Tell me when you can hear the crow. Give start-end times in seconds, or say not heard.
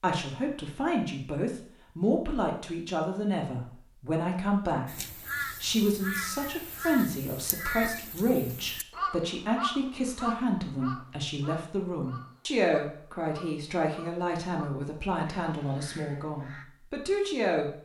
4.8-16.6.